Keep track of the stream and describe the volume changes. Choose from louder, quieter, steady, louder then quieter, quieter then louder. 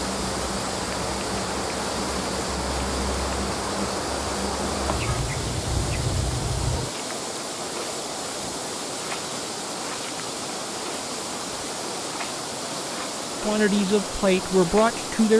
steady.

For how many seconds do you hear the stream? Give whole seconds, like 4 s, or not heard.
15 s.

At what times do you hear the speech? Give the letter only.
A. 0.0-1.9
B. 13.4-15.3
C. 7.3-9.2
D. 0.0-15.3
B.